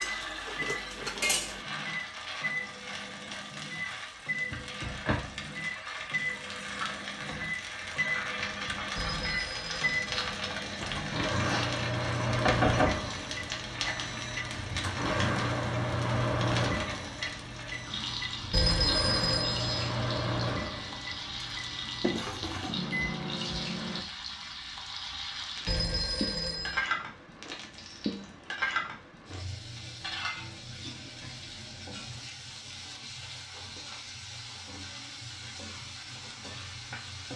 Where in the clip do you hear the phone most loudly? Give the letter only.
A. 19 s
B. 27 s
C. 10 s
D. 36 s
A.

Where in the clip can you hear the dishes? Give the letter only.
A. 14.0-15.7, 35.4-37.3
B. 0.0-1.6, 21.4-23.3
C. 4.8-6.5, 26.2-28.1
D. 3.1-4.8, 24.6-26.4
B.